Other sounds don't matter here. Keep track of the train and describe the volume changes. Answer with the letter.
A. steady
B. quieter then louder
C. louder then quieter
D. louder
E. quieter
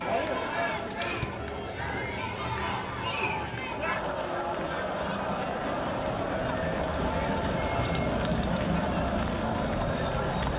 D.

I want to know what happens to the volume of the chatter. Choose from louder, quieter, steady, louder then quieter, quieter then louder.
steady.